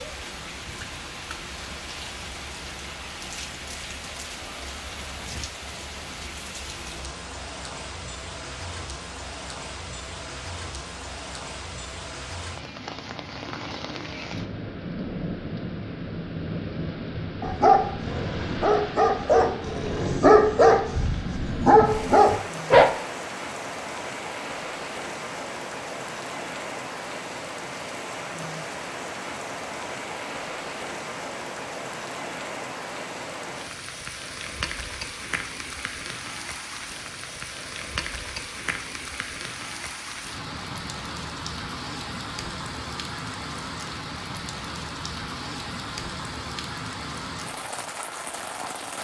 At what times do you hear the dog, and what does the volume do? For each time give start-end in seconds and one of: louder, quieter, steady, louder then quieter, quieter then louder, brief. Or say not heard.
17.4-22.9 louder.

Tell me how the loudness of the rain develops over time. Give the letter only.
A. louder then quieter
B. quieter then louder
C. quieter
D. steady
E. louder
D.